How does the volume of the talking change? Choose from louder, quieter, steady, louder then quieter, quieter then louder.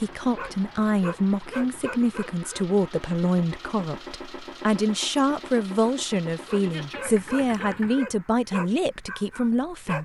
steady.